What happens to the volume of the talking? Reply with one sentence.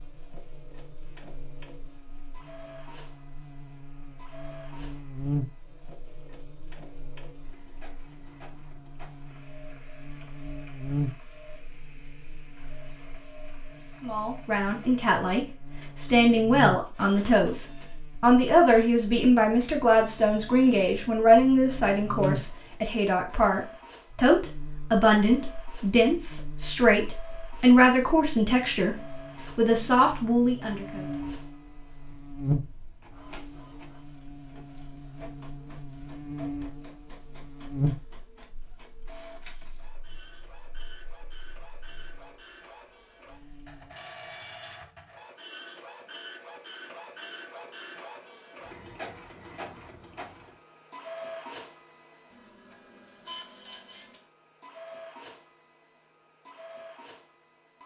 The loudness of the talking stays about the same.